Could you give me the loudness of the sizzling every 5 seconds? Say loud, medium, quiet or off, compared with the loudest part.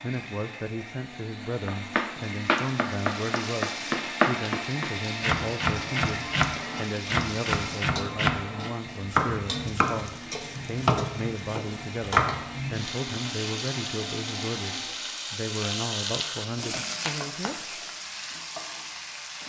medium, medium, loud, loud.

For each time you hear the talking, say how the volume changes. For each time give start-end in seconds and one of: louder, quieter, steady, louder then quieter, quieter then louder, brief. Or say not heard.
0.0-17.7 steady.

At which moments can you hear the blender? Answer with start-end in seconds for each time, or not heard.
0.0-14.8.